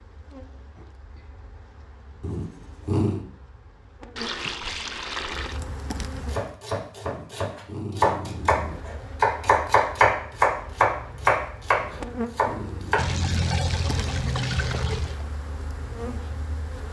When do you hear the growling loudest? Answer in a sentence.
The volume of the growling peaks at 3 seconds.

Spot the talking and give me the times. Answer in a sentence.
You can't hear the talking here.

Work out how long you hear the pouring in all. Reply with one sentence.
The pouring can be heard for 4 seconds in total.